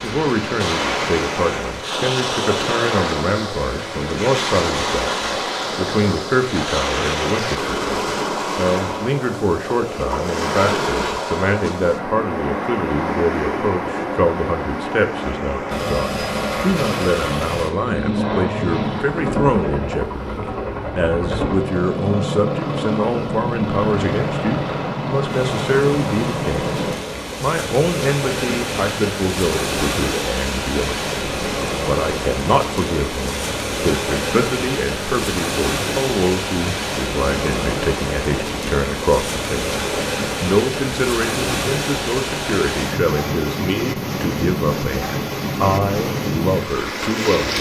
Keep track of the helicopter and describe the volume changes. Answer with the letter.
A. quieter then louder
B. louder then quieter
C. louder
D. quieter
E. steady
E.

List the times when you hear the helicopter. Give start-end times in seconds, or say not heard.
15.7-26.9.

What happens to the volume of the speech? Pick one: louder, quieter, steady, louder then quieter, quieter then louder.
steady.